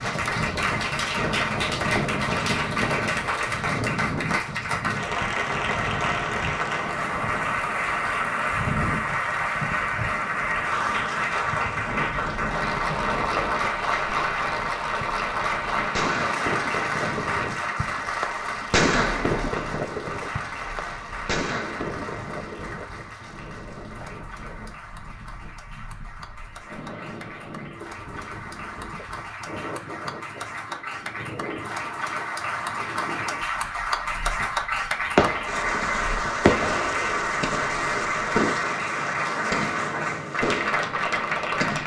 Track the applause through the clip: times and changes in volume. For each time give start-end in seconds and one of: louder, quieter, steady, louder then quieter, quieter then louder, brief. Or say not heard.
0.0-41.8 quieter then louder.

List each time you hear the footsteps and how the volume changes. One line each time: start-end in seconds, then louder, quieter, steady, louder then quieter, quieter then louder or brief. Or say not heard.
not heard.